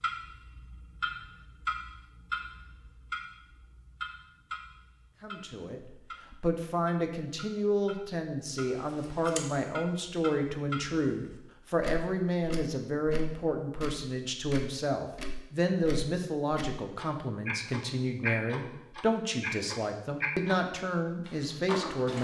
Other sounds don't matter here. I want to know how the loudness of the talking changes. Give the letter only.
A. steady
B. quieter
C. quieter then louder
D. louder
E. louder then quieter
A.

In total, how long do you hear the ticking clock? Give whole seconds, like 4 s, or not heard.
22 s.